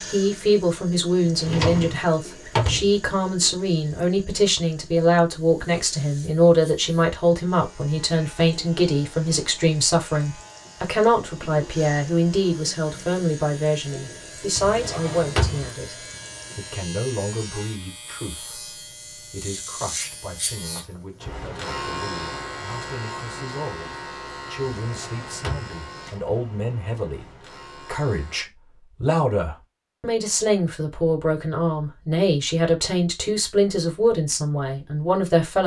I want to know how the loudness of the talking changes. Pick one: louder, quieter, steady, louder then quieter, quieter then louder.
quieter then louder.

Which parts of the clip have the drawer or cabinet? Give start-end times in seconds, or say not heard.
1.4-2.9, 14.6-15.7, 24.8-25.7.